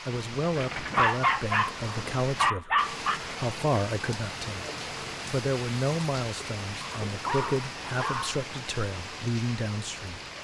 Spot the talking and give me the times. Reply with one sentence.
You can hear the talking from 0.1 to 4.7 s and from 5.3 to 10.2 s.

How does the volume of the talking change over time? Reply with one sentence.
The volume of the talking stays about the same.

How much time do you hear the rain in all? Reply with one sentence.
The rain can be heard for 10 seconds in total.